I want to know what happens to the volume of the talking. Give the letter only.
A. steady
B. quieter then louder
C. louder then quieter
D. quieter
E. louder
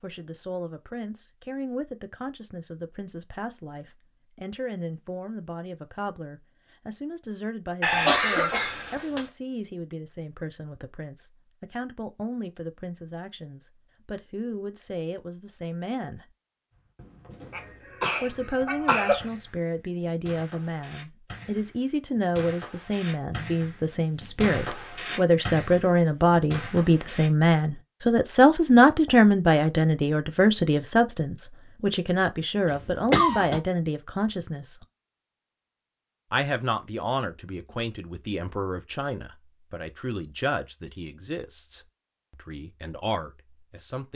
C.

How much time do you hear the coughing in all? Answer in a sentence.
You can hear the coughing for 4 seconds altogether.